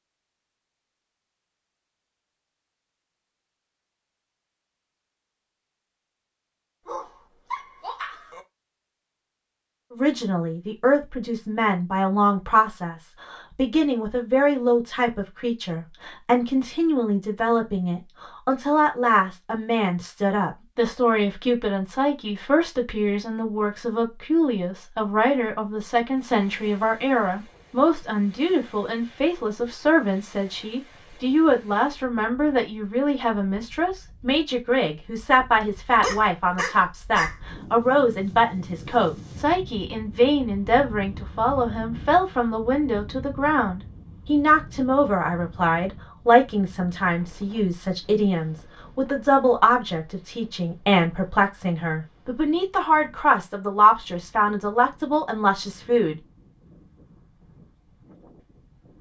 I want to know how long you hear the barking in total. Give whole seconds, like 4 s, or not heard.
3 s.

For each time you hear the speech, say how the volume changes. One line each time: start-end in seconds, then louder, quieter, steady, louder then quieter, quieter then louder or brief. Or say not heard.
9.9-56.2 steady.